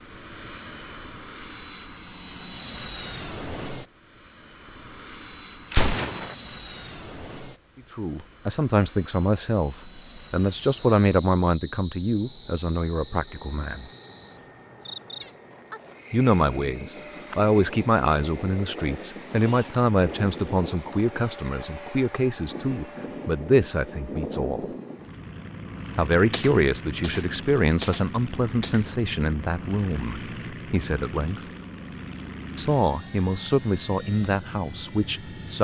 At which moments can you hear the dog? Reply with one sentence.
You can't hear the dog here.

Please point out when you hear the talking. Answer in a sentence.
The talking can be heard from 7.9 to 13.8 s, from 16.1 to 24.6 s, from 25.9 to 31.4 s and from 32.5 to 35.5 s.